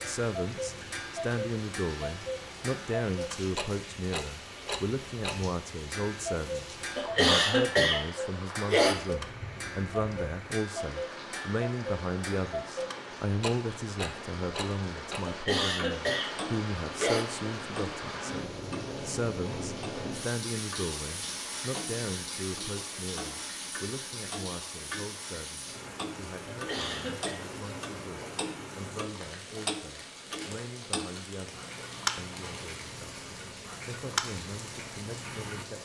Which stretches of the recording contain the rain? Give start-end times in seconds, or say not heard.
0.0-35.8.